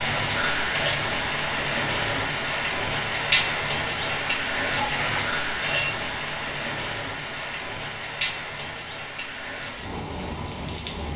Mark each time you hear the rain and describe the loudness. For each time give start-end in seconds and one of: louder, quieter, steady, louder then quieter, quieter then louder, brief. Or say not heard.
0.0-11.1 quieter.